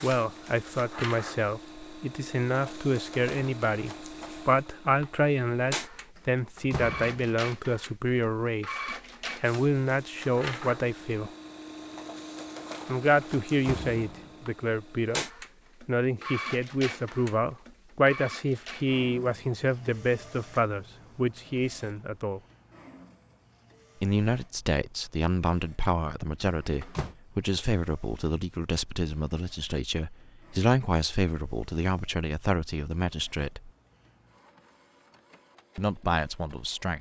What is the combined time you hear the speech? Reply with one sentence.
The speech can be heard for 31 seconds in total.